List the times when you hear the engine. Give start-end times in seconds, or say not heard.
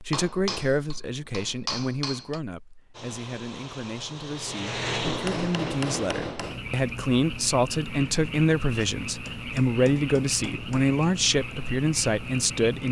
2.9-6.0.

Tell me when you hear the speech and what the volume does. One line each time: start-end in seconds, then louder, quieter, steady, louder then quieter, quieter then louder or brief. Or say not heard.
0.0-12.8 quieter then louder.